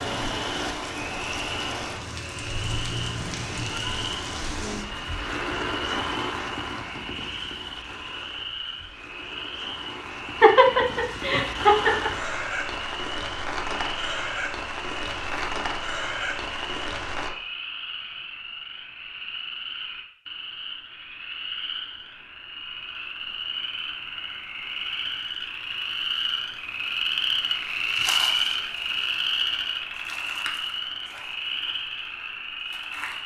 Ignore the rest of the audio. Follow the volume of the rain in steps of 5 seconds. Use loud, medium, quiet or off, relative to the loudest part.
loud, loud, loud, loud, off, off, off.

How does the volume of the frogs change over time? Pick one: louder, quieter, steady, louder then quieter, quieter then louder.
louder.